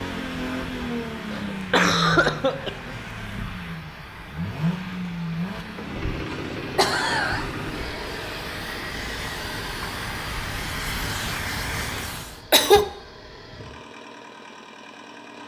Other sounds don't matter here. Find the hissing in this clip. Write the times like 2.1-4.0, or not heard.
0.1-12.4.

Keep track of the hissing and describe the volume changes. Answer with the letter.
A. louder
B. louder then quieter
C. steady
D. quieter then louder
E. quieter
A.